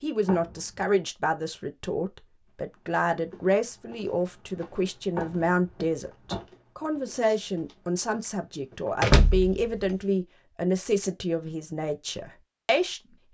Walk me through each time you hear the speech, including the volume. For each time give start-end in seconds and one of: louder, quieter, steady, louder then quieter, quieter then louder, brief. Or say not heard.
0.0-13.3 steady.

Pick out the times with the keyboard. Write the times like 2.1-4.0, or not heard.
not heard.